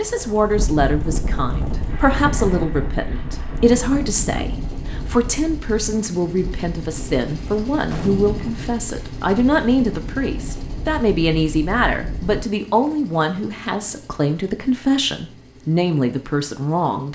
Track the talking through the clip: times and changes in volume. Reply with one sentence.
The talking can be heard from 0.0 to 17.1 s, at a steady volume.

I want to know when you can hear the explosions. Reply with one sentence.
You can hear the explosions from 7.8 to 8.7 s.